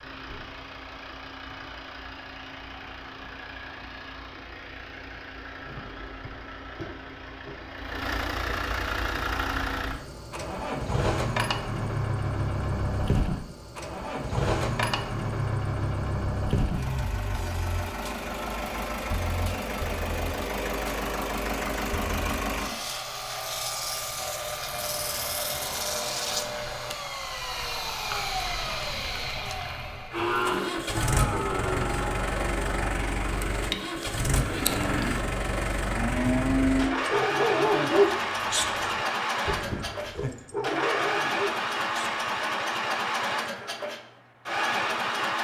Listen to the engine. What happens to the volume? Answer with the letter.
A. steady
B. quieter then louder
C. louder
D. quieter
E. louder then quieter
C.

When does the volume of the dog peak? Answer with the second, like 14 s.
38 s.